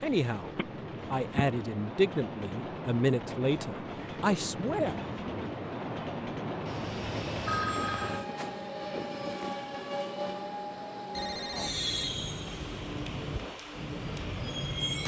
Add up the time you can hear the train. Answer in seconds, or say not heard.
15 s.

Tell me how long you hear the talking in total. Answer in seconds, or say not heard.
5 s.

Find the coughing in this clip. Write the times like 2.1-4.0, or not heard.
not heard.